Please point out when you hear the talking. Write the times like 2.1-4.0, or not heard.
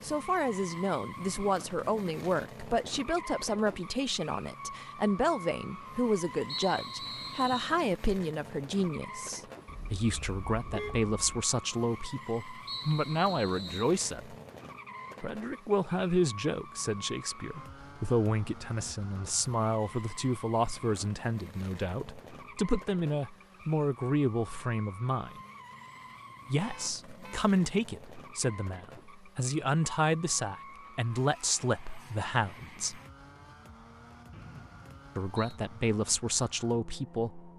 0.0-14.3, 15.2-25.4, 26.4-33.0, 35.1-37.5.